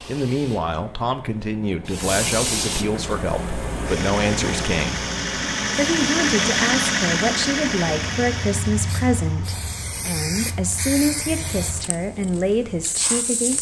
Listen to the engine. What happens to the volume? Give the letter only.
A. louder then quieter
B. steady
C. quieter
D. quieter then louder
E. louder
A.